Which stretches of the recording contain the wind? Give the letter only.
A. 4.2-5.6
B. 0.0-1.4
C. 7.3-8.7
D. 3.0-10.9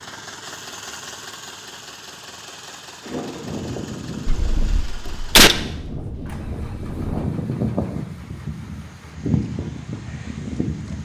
D.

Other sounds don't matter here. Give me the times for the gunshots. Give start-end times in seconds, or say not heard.
4.2-5.6.